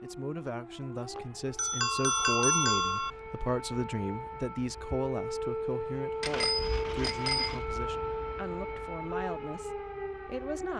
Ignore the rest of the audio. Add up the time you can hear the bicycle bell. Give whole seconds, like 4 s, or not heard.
3 s.